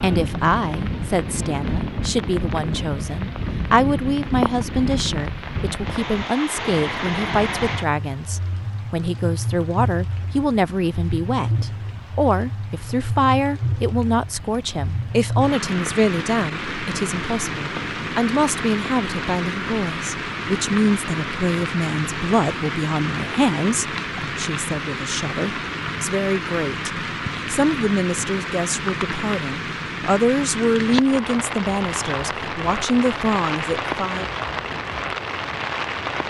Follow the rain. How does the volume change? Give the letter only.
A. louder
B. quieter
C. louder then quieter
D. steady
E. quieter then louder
D.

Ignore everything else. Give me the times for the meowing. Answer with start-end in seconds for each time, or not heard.
not heard.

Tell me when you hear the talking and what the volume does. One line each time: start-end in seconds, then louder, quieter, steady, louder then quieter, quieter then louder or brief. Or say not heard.
0.0-34.3 steady.